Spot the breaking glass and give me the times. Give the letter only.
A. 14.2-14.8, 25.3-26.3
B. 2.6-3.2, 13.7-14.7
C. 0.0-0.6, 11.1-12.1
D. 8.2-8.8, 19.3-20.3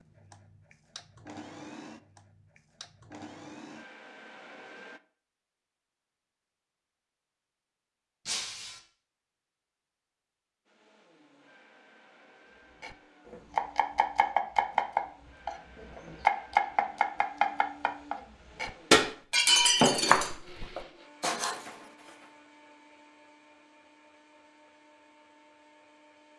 D.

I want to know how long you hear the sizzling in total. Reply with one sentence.
The sizzling can't be heard in this clip.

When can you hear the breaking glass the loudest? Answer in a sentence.
The volume of the breaking glass peaks at 20 seconds.